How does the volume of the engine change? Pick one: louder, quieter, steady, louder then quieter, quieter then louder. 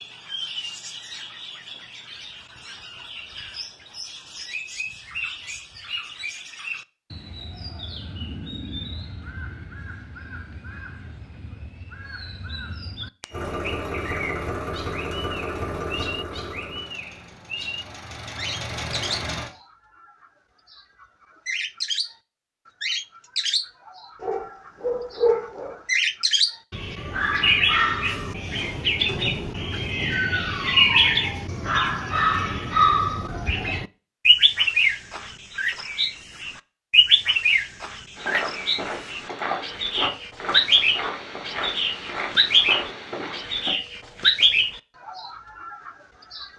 quieter then louder.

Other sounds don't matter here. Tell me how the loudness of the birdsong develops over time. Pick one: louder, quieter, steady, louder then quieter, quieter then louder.
louder.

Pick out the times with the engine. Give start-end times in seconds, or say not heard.
13.3-19.5.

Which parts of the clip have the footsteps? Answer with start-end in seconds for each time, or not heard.
38.1-43.8.